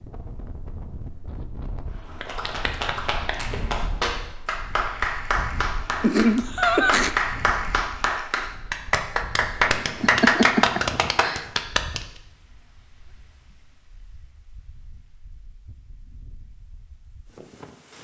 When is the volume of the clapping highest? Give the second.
10 s.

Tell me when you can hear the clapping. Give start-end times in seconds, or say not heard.
2.2-12.1.